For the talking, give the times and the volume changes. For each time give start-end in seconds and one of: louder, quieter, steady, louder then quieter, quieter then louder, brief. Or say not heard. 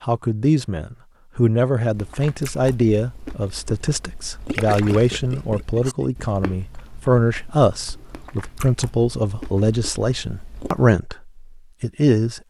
0.0-12.4 steady.